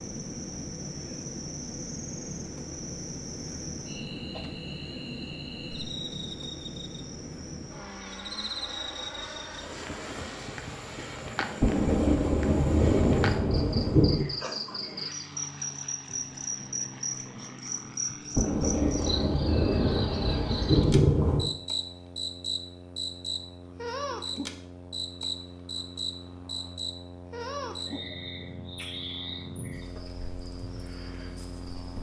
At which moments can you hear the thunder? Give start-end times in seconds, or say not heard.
11.6-14.2, 18.4-21.5.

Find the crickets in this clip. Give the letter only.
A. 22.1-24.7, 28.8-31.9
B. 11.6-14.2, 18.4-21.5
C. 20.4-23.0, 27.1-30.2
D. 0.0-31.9
D.